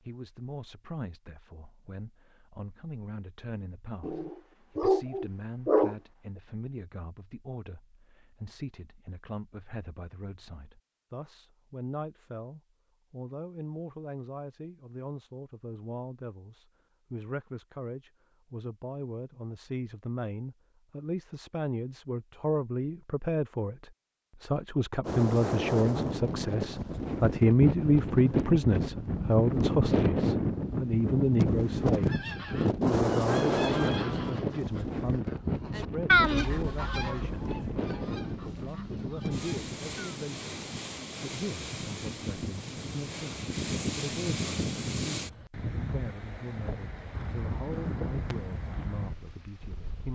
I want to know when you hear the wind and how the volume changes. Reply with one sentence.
The wind can be heard from 25.0 to 50.1 s, getting quieter.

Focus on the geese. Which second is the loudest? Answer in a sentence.
The loudest moment of the geese is at 36 seconds.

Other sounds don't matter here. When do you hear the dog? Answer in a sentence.
You can hear the dog from 4.0 to 6.0 s.